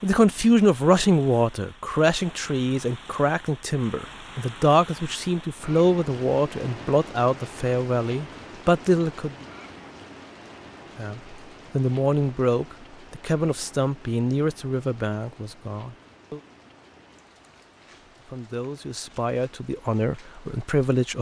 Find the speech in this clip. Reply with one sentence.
The speech can be heard from 0.0 to 9.4 s, from 10.9 to 16.4 s and from 18.2 to 21.1 s.